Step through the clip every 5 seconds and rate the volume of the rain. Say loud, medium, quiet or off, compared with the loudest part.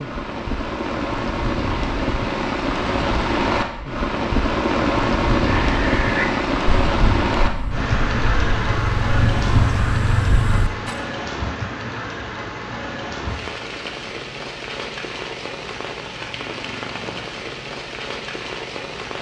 loud, loud, medium, medium.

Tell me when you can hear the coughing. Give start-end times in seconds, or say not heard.
not heard.